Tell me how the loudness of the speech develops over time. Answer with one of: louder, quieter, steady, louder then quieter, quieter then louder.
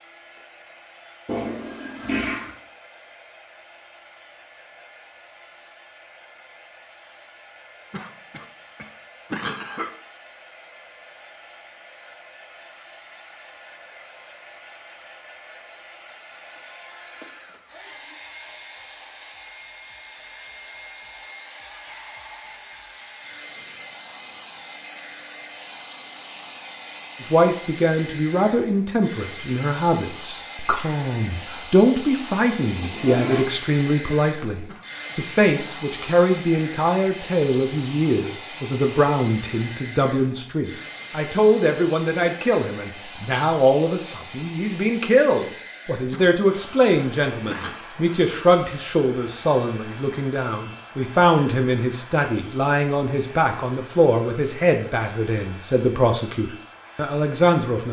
steady.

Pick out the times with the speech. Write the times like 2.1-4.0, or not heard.
27.2-57.8.